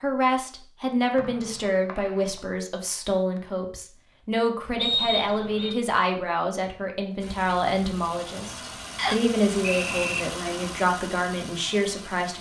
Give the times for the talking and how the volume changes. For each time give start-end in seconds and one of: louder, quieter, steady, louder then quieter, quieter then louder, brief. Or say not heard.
0.0-12.3 steady.